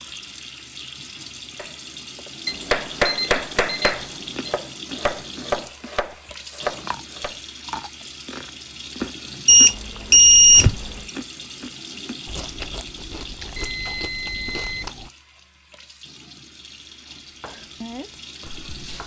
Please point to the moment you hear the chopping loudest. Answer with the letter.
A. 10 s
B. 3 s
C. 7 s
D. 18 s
B.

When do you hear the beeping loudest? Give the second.
10 s.